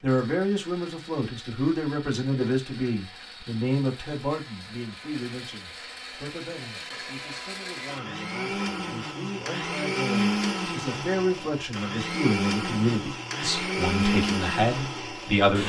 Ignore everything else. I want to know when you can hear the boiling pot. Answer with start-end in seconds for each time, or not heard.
not heard.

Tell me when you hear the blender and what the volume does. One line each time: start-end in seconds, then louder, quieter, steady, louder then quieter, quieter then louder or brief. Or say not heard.
0.0-15.6 louder.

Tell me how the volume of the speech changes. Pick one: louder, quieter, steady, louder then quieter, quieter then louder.
quieter then louder.